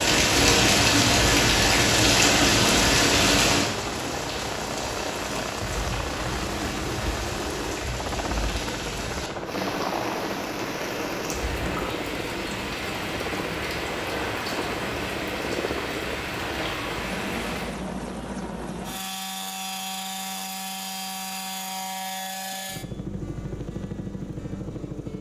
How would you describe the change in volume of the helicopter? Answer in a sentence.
The loudness of the helicopter stays about the same.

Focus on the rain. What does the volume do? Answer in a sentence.
The loudness of the rain goes down.